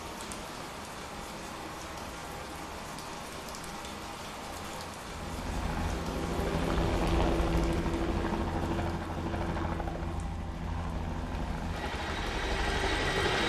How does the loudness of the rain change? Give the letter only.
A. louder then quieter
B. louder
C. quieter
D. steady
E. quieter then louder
C.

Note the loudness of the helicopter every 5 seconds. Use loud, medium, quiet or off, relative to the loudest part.
off, loud, loud.